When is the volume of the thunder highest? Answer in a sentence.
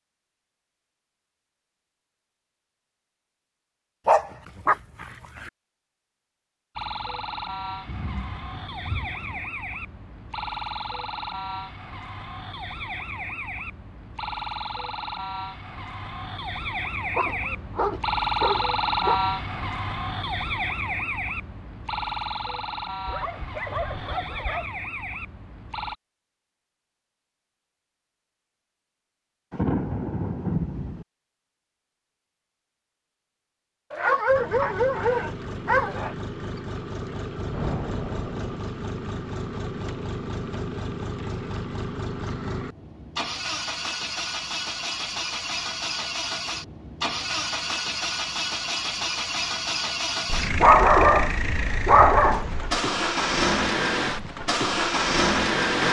The loudest moment of the thunder is at 30 seconds.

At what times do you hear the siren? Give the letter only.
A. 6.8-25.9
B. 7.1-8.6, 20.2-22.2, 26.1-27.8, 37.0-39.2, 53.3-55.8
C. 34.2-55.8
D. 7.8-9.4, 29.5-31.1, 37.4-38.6
A.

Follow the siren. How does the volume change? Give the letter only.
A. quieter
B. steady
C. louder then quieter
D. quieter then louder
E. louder
C.